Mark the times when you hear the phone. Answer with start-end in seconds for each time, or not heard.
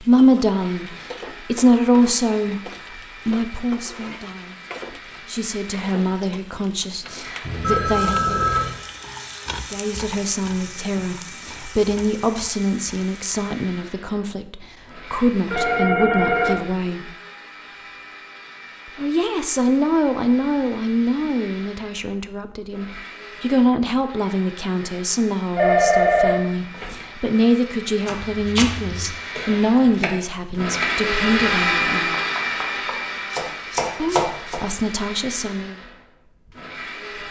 7.4-8.8, 15.5-16.6, 25.6-27.1.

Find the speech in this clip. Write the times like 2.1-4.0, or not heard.
0.0-8.4, 9.7-17.1, 18.9-32.1, 34.0-35.8.